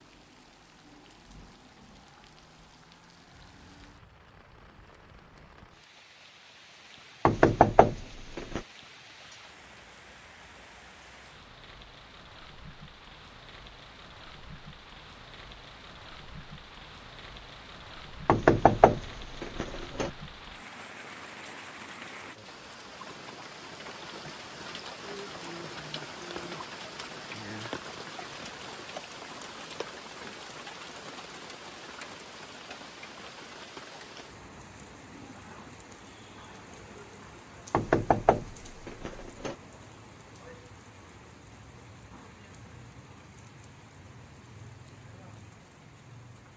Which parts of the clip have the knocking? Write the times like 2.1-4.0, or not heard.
7.2-8.6, 18.2-20.1, 37.7-39.5.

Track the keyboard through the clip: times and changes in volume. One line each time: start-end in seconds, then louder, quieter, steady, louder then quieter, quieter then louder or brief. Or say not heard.
not heard.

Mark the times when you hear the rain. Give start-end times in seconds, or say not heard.
0.0-46.5.